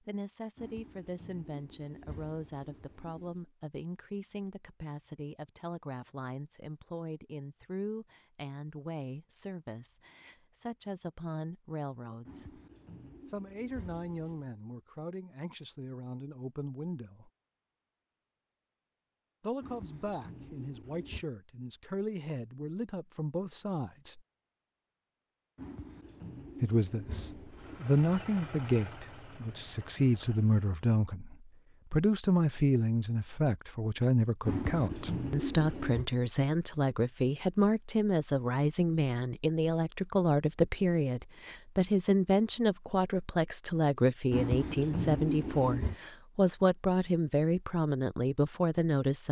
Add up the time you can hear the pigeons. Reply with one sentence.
The pigeons can be heard for 12 seconds in total.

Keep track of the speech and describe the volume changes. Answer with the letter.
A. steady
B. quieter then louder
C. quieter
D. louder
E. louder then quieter
D.